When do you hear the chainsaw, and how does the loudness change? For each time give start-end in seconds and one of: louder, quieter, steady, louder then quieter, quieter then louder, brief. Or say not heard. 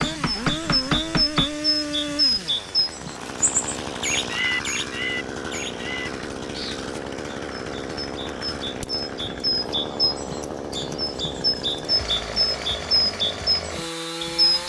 0.0-14.6 steady.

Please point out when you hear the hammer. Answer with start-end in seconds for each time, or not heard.
0.0-1.6.